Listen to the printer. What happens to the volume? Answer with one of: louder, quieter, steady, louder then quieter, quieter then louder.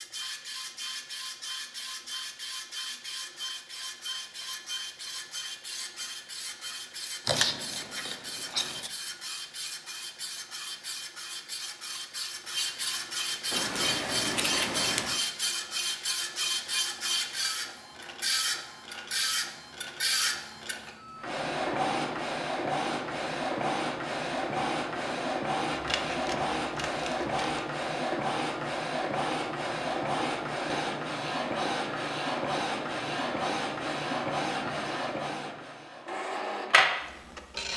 louder.